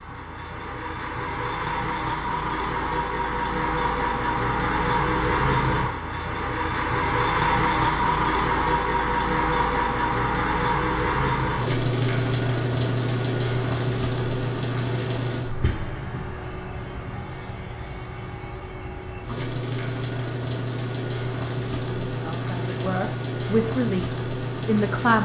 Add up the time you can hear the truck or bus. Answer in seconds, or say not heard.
25 s.